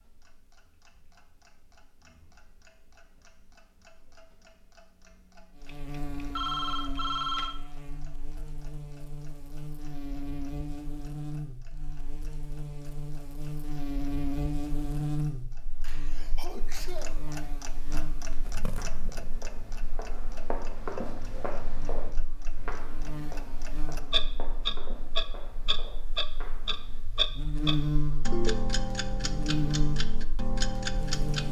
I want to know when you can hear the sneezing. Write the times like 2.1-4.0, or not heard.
15.8-17.4.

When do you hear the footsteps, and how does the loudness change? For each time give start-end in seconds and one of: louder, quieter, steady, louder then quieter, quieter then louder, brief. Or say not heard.
17.8-27.0 louder then quieter.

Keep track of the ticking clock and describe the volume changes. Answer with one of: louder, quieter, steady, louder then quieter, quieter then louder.
louder.